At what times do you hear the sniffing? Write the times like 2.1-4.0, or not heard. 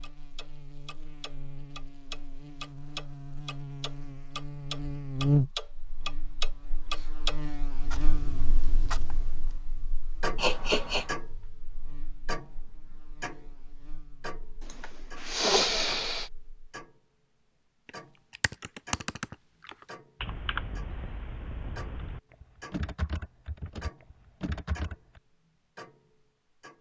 10.3-11.1, 14.7-16.3.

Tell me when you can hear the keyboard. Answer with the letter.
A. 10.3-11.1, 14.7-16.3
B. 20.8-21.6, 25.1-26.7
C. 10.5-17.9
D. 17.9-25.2
D.